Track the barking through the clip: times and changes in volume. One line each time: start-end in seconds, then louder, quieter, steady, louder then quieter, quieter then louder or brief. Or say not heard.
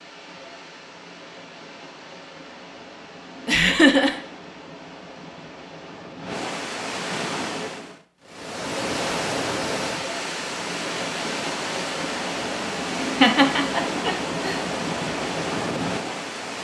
not heard.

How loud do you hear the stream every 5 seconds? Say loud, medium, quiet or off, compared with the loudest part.
quiet, loud, loud, loud.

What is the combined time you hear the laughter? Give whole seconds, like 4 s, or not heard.
2 s.